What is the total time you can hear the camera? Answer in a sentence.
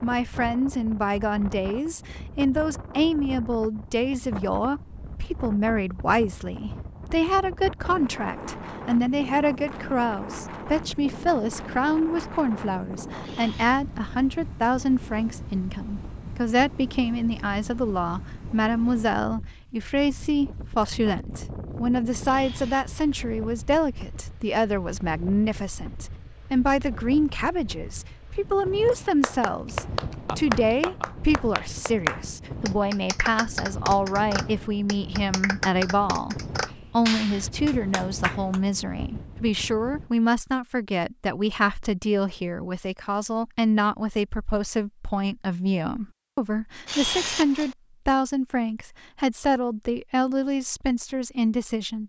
You can hear the camera for 2 seconds altogether.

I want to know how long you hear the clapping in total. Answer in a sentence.
The clapping can be heard for 10 seconds in total.